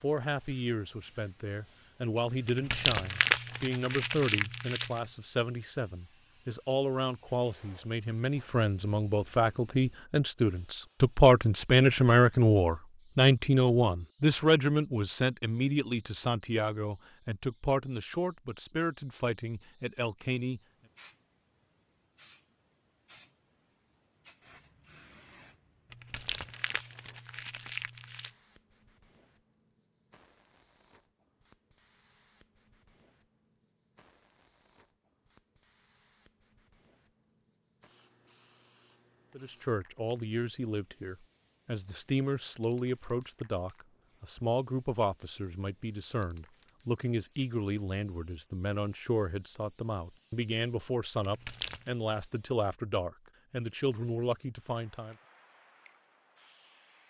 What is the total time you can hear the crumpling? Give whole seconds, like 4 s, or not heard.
6 s.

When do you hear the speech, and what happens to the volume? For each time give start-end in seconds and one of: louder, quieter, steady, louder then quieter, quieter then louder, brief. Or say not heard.
0.0-20.6 louder then quieter
39.4-55.1 steady.